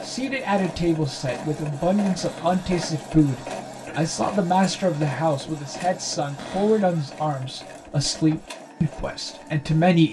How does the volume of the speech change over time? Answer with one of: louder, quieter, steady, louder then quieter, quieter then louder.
steady.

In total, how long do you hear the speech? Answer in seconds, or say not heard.
10 s.